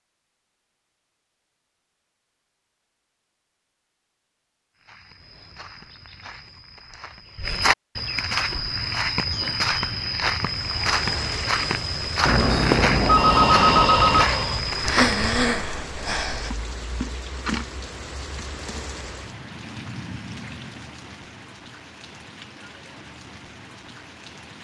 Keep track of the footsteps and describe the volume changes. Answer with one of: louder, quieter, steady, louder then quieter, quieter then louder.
louder.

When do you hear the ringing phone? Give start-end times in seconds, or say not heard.
12.2-14.2.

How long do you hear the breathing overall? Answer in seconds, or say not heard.
4 s.